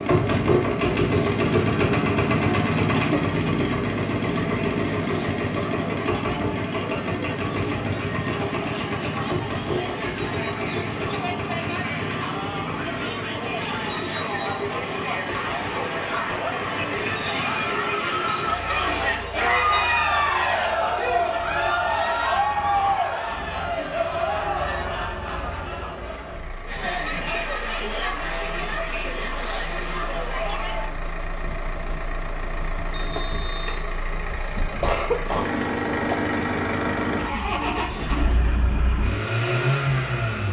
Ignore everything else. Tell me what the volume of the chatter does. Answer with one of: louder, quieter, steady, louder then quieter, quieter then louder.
louder then quieter.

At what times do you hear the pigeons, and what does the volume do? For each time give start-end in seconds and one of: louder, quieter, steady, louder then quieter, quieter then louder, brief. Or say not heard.
not heard.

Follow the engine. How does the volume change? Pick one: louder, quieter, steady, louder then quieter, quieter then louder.
quieter then louder.